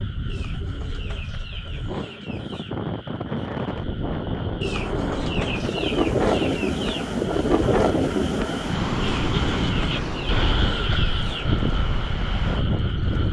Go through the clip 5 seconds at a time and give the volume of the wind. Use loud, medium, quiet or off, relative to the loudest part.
medium, loud, loud.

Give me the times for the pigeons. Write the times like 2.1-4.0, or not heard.
0.2-2.8, 4.6-7.0, 9.0-11.4.